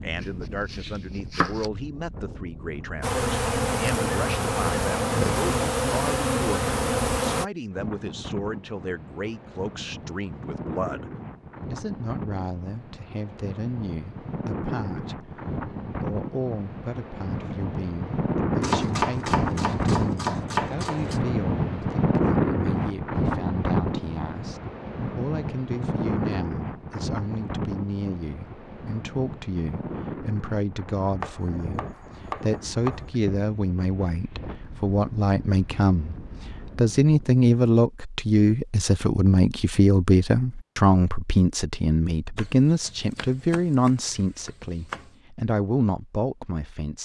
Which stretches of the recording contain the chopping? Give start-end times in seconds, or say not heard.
0.2-1.7, 18.6-21.2, 31.2-33.1, 42.4-45.1.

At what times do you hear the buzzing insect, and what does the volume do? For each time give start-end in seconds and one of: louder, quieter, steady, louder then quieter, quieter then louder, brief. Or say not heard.
3.0-7.5 steady.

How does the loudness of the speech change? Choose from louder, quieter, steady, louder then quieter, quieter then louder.
louder.